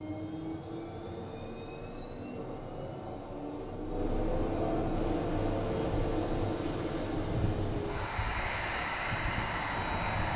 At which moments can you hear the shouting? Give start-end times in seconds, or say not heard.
not heard.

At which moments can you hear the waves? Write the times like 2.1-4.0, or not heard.
5.0-10.3.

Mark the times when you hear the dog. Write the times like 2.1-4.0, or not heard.
not heard.